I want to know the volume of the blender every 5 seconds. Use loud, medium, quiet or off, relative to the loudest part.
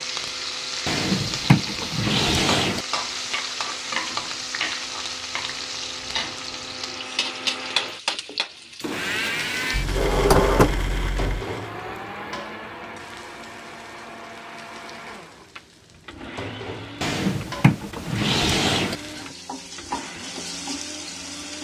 medium, loud, loud, medium, medium.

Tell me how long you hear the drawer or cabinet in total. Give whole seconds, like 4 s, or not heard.
6 s.